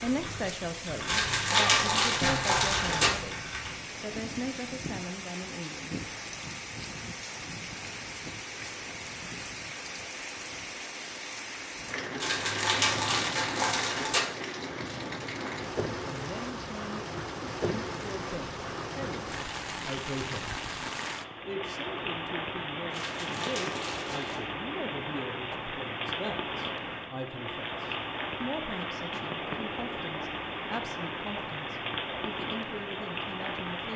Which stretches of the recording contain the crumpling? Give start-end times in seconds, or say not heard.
1.1-3.1, 12.2-14.2, 22.9-24.4.